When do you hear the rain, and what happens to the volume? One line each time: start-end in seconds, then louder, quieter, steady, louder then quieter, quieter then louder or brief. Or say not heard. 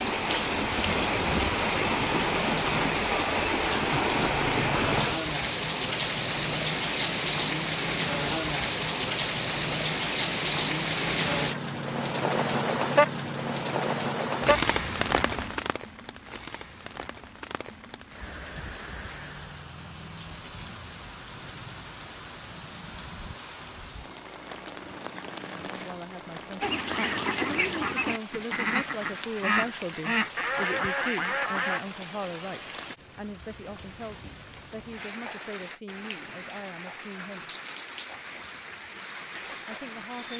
0.0-40.3 quieter.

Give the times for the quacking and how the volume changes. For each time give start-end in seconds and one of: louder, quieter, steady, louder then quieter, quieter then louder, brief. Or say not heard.
26.6-31.8 steady.